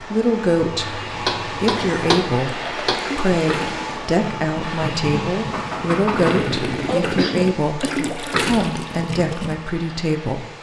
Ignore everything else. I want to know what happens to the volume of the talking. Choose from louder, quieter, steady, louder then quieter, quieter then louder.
steady.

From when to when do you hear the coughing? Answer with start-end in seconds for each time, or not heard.
0.8-2.2, 7.2-8.2.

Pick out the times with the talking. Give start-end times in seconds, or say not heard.
0.0-10.5.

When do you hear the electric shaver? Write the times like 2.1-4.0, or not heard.
not heard.